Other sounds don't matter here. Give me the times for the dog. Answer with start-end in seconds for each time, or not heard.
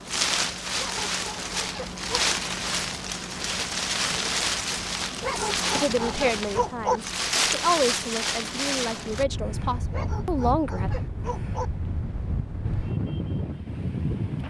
0.8-2.2, 5.2-7.0, 9.9-11.7.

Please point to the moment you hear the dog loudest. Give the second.
7 s.